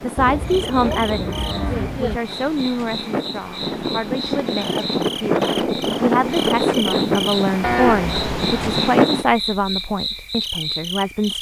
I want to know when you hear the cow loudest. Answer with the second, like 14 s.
8 s.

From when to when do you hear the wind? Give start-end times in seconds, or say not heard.
0.0-9.2.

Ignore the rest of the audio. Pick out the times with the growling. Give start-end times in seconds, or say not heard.
not heard.